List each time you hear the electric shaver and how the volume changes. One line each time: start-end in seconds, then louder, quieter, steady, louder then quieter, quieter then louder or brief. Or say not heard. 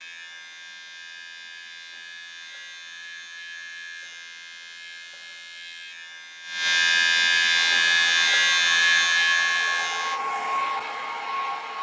0.0-10.2 louder.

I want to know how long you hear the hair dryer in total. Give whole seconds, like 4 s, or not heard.
4 s.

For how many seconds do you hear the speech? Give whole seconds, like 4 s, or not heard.
not heard.